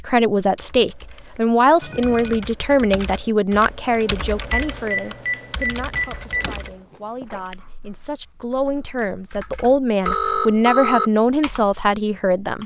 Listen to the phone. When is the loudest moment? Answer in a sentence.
The loudest moment of the phone is at 11 seconds.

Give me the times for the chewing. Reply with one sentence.
The chewing can be heard from 6.2 to 7.6 s.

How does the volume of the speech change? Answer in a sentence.
The loudness of the speech goes down, then up.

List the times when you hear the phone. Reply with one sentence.
The phone can be heard from 1.8 to 2.5 s, from 4.8 to 6.7 s and from 10.1 to 11.1 s.